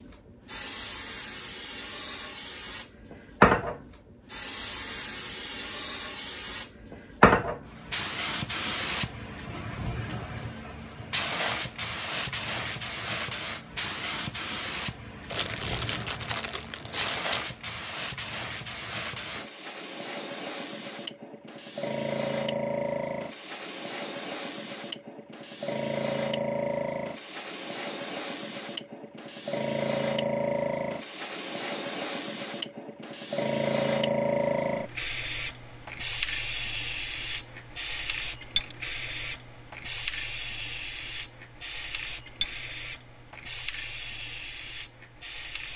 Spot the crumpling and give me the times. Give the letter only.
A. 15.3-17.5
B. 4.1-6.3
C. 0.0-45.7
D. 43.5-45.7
A.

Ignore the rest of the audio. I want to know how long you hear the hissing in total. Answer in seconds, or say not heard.
46 s.